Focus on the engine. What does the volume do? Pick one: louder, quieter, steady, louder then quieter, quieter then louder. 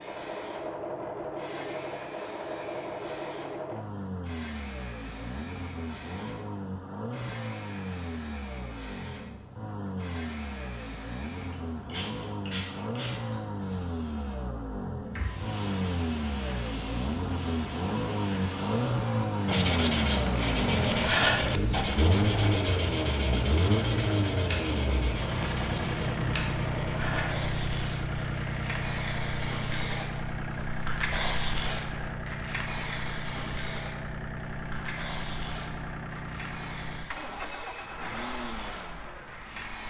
louder then quieter.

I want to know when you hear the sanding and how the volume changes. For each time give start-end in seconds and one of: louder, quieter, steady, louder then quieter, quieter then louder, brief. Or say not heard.
19.4-28.8 quieter.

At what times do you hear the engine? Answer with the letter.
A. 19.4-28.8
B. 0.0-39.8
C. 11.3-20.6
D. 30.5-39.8
B.